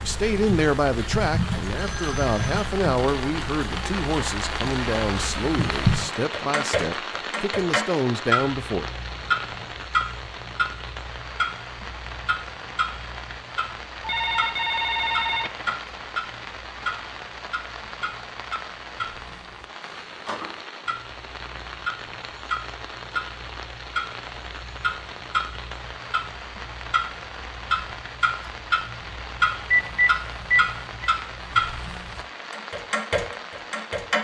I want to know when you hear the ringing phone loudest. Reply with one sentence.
The volume of the ringing phone peaks at 30 seconds.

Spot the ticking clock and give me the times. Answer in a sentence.
The ticking clock can be heard from 0.0 to 34.1 s.